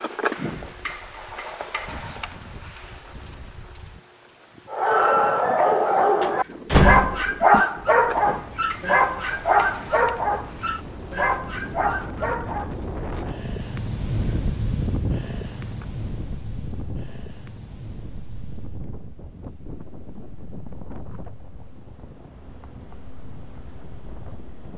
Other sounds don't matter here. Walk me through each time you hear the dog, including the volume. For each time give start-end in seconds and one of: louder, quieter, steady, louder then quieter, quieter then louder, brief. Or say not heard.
4.7-12.8 quieter.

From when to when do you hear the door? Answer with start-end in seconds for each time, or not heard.
6.2-7.7.